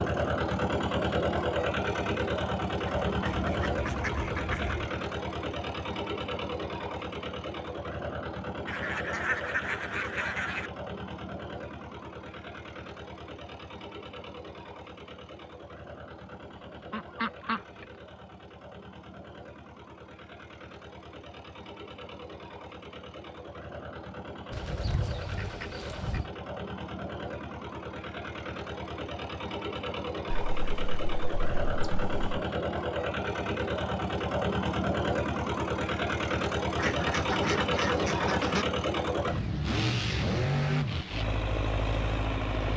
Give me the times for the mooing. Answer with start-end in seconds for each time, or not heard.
not heard.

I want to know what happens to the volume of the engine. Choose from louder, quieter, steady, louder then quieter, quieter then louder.
quieter then louder.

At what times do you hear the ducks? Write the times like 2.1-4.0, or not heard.
2.9-4.8, 8.7-10.7, 16.9-17.9, 24.5-26.3, 30.3-32.2, 36.8-38.6.